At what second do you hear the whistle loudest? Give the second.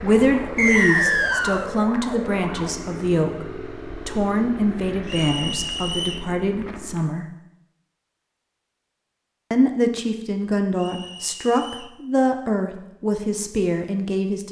1 s.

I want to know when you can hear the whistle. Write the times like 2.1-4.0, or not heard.
0.6-1.7, 5.0-6.2, 10.8-11.9.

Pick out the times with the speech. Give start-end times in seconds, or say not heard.
0.0-7.2, 9.5-14.4.